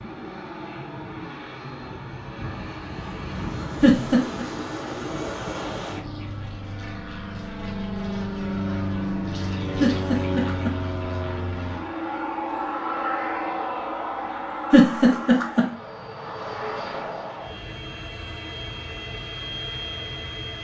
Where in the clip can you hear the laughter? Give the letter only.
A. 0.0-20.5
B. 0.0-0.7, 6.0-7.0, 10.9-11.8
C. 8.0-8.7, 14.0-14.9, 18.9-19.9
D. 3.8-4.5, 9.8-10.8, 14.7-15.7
D.